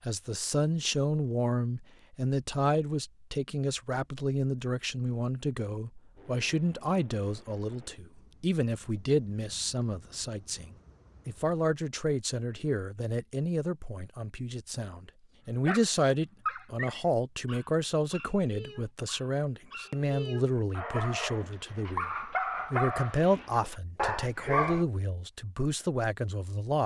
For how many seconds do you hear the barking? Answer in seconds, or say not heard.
9 s.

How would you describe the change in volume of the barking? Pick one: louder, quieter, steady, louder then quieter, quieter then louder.
quieter then louder.